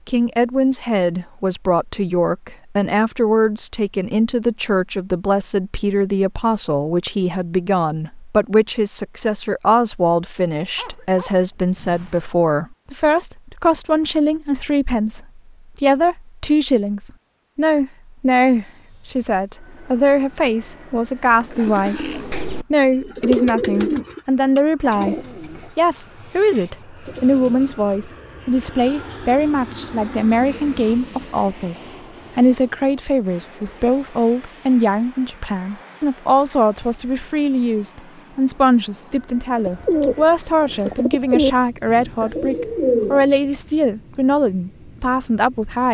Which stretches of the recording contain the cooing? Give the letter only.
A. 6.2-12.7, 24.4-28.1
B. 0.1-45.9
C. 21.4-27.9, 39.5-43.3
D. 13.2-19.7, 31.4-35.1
C.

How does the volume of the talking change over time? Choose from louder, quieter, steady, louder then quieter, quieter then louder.
steady.